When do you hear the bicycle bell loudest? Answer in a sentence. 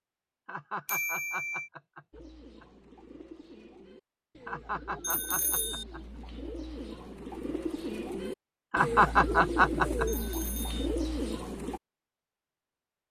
The volume of the bicycle bell peaks at 1 second.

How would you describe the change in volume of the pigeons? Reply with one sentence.
The volume of the pigeons goes up.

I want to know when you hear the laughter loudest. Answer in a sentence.
The volume of the laughter peaks at 9 seconds.